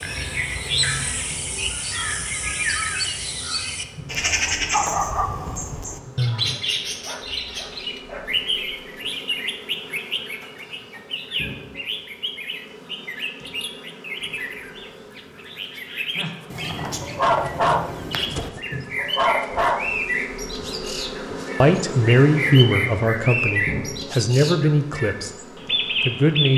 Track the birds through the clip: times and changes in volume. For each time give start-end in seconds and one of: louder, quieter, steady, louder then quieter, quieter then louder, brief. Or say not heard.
0.0-26.5 quieter then louder.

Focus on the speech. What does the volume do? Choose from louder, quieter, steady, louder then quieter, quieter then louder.
quieter.